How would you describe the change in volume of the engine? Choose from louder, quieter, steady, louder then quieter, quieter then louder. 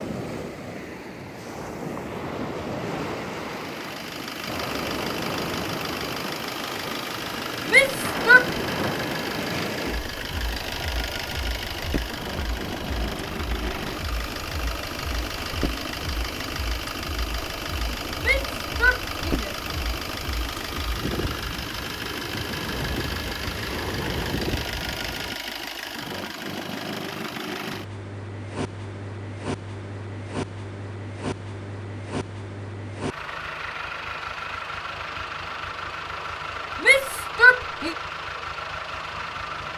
steady.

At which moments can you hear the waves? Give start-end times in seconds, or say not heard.
0.0-25.4.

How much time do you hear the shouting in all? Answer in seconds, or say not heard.
3 s.